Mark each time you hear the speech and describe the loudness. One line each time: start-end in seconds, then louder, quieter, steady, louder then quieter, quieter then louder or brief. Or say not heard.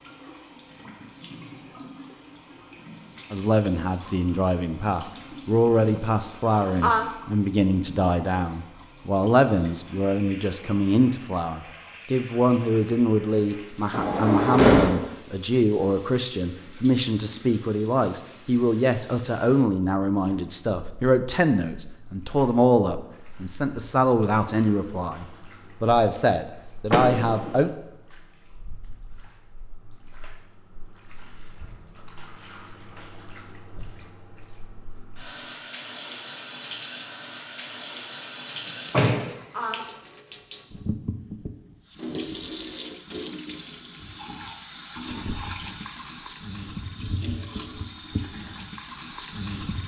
3.3-27.7 steady.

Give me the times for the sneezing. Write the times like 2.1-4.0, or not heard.
5.8-7.1, 38.6-39.9.